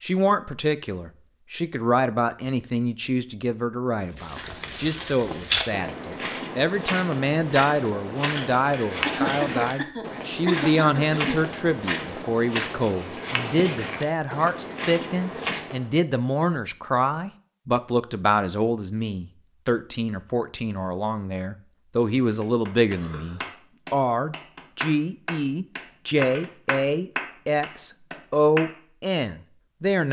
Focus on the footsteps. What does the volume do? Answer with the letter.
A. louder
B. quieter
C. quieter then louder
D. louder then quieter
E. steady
E.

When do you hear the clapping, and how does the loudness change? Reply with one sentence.
The clapping can be heard from 22.4 to 28.7 s, getting louder then quieter.